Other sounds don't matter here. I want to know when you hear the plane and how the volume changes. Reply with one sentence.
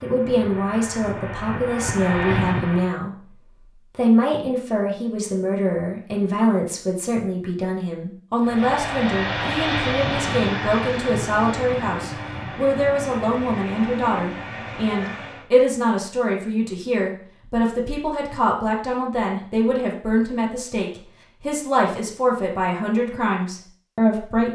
The plane can be heard briefly from 0.0 to 3.0 s; and from 8.4 to 15.5 s, getting quieter.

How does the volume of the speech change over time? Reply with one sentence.
The loudness of the speech stays about the same.